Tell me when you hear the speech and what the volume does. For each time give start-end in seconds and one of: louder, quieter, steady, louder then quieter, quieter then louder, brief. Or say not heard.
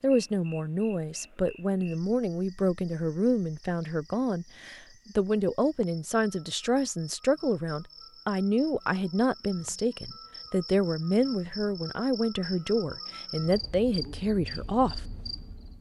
0.0-15.0 steady.